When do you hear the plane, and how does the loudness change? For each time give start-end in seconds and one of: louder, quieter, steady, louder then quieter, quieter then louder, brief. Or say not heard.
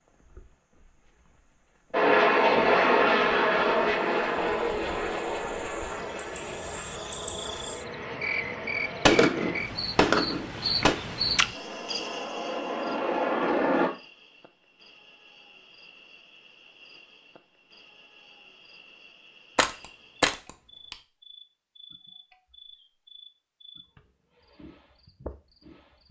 1.9-9.7 quieter
11.5-13.9 brief.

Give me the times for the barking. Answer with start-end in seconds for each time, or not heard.
not heard.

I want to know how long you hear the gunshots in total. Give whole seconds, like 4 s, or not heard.
3 s.